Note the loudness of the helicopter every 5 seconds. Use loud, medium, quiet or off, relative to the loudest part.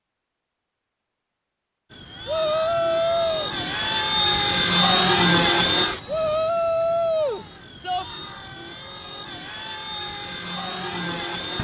loud, loud, medium.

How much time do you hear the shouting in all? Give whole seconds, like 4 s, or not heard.
3 s.